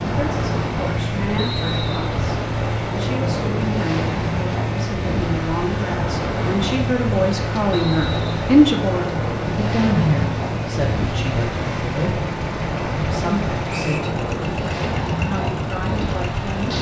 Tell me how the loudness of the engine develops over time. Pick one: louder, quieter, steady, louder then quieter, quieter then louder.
steady.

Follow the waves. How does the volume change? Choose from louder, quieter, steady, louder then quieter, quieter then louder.
steady.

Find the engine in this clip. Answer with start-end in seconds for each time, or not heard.
0.0-16.7.